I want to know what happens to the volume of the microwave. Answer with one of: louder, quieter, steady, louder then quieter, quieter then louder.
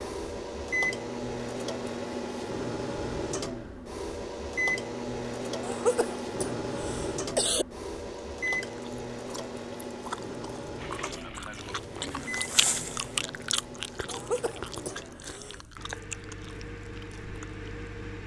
quieter.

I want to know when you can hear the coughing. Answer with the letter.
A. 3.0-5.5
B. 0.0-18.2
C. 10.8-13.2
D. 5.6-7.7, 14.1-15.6
D.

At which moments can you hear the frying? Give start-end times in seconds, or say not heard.
10.8-13.2.